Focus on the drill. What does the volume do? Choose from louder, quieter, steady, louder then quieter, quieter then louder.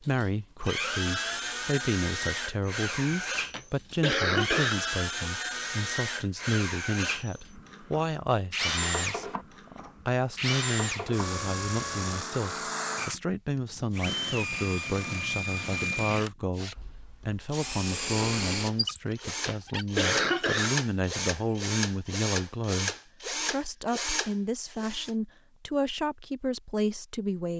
steady.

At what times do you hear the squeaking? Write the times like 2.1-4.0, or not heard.
18.8-19.9.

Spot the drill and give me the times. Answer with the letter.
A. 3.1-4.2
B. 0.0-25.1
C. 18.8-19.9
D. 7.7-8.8
B.